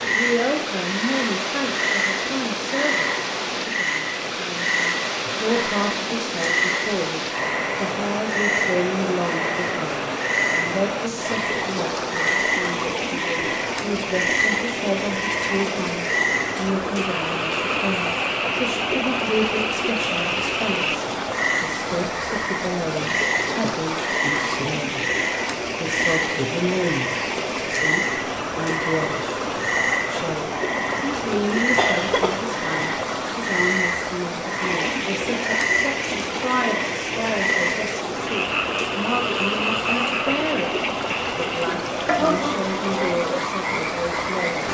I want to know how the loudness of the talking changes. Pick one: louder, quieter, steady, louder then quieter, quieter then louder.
steady.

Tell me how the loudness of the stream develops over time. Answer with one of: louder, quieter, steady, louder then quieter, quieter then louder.
steady.